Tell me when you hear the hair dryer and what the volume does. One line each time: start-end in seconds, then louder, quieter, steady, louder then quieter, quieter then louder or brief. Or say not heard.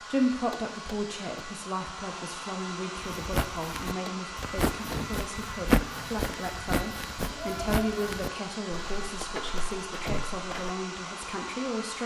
0.0-12.0 steady.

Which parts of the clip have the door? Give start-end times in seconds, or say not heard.
0.5-1.4, 4.0-5.2, 9.2-10.3.